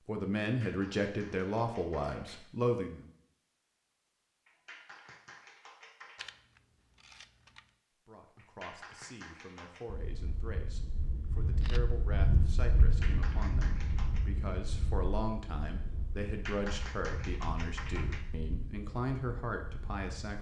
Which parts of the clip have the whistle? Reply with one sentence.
The whistle can't be heard in this clip.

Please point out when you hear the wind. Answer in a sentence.
You can hear the wind from 9.8 to 20.3 s.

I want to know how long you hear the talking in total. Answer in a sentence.
The talking can be heard for 15 seconds in total.